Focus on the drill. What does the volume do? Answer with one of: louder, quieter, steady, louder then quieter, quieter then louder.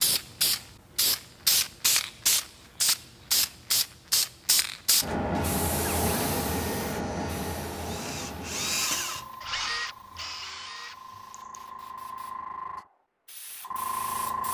louder then quieter.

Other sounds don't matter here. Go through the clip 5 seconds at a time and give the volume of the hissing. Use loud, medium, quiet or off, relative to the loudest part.
loud, medium, medium.